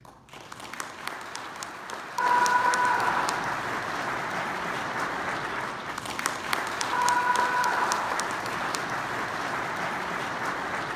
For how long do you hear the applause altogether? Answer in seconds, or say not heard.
11 s.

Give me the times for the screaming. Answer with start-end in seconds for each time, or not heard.
2.1-3.5, 6.9-8.2.